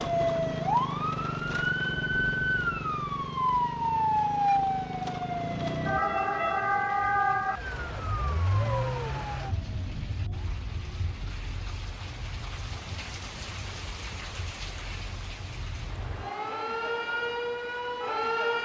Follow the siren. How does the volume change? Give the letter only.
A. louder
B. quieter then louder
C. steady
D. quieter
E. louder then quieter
B.